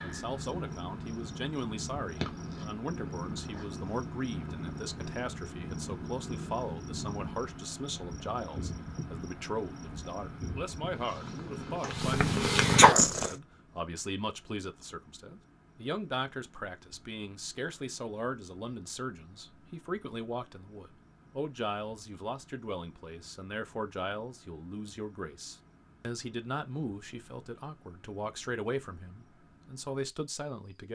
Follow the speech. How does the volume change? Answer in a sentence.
The volume of the speech stays about the same.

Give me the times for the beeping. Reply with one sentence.
You can't hear the beeping here.